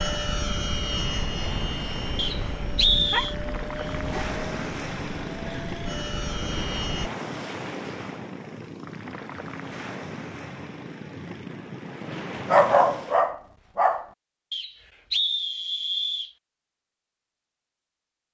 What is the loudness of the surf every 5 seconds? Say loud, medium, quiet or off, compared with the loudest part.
loud, loud, loud, off.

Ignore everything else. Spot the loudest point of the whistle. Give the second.
3 s.